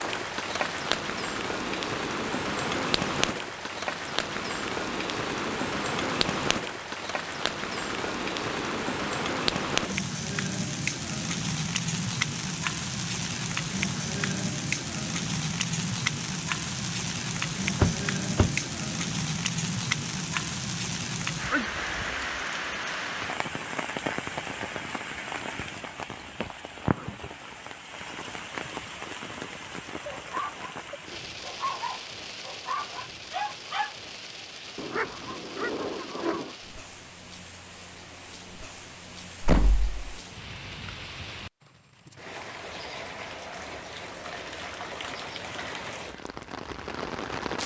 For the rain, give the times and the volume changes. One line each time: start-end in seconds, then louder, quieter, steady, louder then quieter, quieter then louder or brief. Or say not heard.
0.0-47.6 quieter.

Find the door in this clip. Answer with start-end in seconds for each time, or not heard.
17.8-18.6, 39.4-40.0.